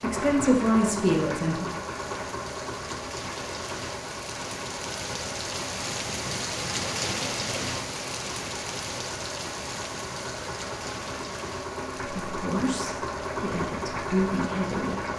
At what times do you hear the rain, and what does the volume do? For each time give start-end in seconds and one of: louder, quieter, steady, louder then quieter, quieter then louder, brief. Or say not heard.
0.0-15.1 louder then quieter.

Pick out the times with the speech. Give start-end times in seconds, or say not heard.
0.0-1.6, 12.2-15.0.